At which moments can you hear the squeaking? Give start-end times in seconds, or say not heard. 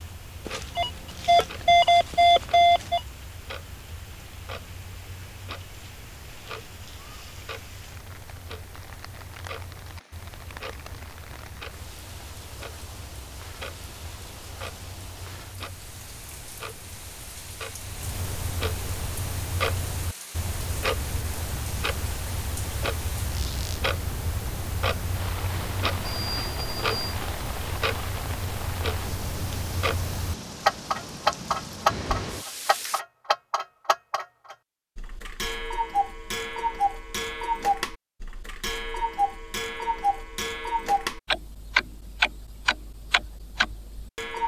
23.3-23.9.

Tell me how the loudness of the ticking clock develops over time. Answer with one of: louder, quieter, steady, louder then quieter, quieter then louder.
louder.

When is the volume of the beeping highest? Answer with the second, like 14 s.
2 s.